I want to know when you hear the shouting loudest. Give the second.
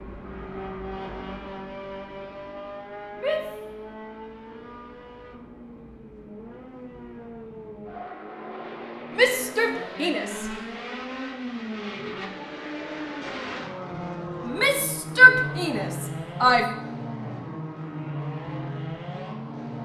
15 s.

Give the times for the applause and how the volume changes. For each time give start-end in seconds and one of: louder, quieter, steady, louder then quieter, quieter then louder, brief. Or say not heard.
not heard.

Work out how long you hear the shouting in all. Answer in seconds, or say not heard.
4 s.